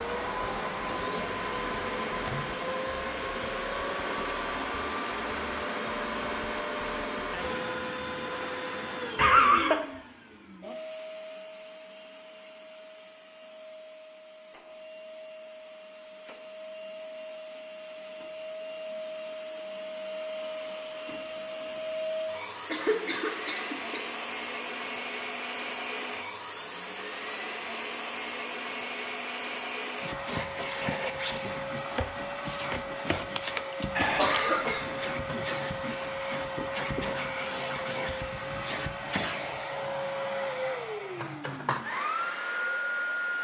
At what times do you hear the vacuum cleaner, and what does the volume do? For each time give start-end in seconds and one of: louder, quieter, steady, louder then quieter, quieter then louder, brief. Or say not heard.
0.0-43.4 quieter then louder.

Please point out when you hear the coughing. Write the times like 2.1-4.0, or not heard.
9.2-9.8, 22.6-24.0, 34.0-35.1.